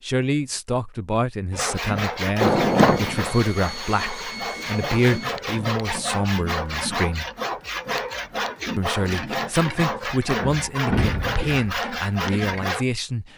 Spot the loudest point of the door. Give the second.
3 s.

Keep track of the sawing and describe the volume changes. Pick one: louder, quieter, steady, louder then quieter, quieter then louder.
steady.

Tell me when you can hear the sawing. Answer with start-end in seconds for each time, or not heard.
1.5-12.8.